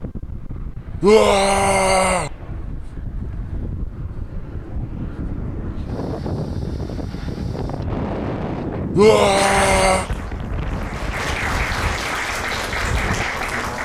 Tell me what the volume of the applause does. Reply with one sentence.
The volume of the applause goes up.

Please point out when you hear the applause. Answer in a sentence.
You can hear the applause from 9.3 to 13.8 s.